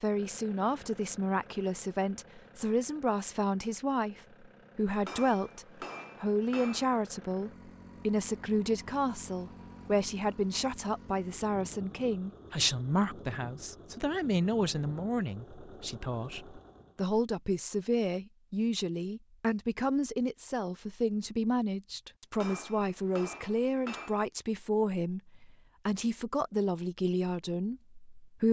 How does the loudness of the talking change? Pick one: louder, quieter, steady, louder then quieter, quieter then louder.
steady.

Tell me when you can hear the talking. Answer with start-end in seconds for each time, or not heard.
0.0-28.4.